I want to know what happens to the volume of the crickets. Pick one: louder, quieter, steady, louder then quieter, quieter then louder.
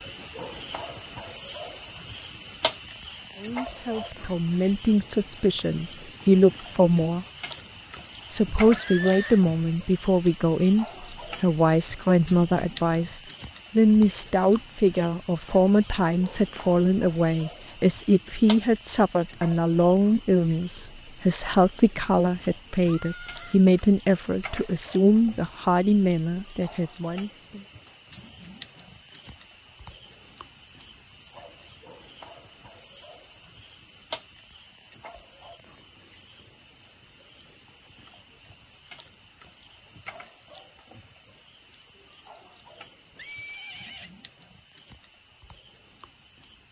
quieter.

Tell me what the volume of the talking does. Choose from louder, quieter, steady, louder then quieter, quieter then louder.
steady.